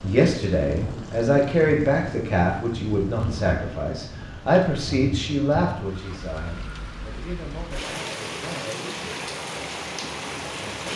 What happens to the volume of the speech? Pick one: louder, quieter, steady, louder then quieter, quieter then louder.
quieter.